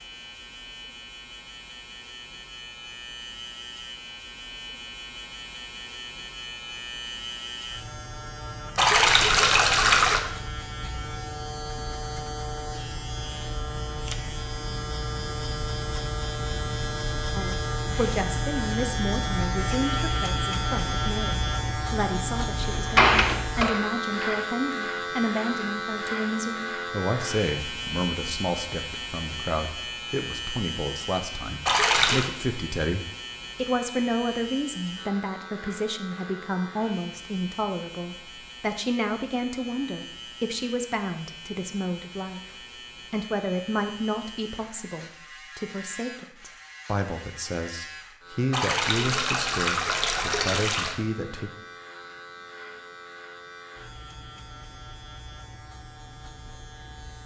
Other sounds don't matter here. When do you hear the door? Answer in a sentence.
The door can be heard from 22.7 to 24.4 s.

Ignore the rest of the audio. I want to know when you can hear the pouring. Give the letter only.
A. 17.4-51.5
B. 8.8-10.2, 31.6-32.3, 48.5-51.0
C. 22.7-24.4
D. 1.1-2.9
B.